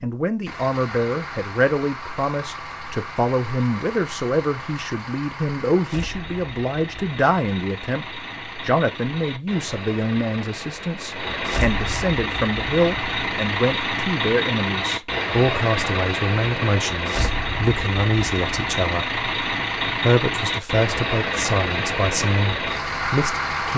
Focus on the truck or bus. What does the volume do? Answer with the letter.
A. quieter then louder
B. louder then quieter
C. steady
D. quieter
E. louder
E.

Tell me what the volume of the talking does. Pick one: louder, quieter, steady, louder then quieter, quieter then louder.
steady.